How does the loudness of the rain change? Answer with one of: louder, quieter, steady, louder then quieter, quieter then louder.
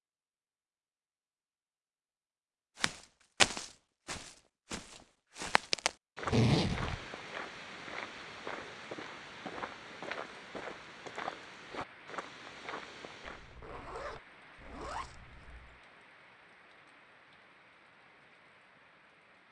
quieter.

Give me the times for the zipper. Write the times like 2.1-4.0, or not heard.
6.2-7.0, 13.2-15.8.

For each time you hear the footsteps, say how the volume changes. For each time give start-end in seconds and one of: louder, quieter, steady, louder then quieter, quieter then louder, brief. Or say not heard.
2.8-13.6 quieter.